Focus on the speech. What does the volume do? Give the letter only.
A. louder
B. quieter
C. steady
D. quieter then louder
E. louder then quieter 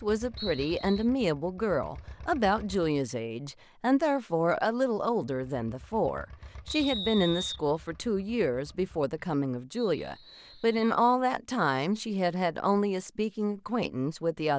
C.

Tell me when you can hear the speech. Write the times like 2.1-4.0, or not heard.
0.0-14.5.